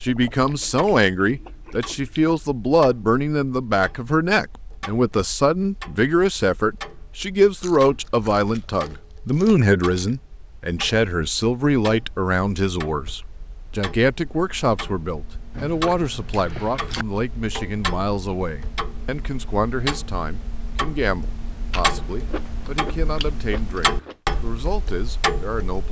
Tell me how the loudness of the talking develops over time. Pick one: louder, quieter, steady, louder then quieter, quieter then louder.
quieter.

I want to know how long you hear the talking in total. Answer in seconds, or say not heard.
26 s.